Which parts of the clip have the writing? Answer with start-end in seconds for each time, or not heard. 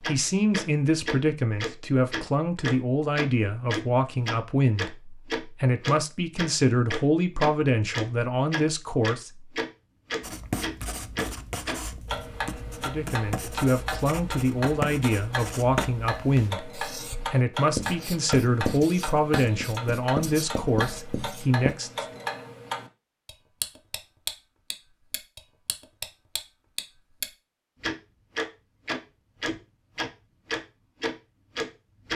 10.2-21.8.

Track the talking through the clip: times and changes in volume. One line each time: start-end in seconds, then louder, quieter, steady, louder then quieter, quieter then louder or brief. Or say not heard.
0.0-9.3 steady
12.8-22.1 steady.